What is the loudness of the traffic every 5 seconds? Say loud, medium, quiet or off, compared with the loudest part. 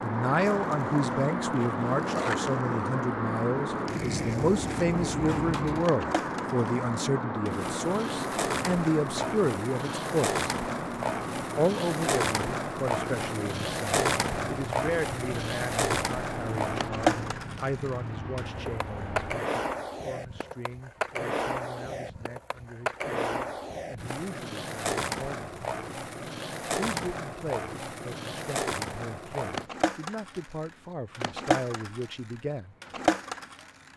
loud, loud, medium, medium, off, off, off.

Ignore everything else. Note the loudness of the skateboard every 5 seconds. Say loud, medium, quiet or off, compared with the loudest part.
medium, medium, loud, loud, loud, loud, loud.